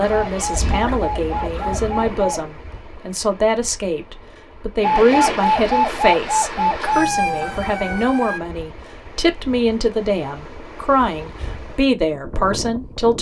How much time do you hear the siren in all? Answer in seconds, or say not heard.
6 s.